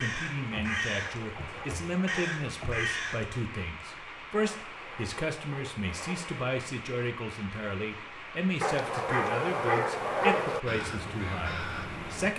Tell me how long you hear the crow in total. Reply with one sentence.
The crow can be heard for 5 seconds in total.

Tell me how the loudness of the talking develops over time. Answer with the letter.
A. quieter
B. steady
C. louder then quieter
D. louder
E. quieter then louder
B.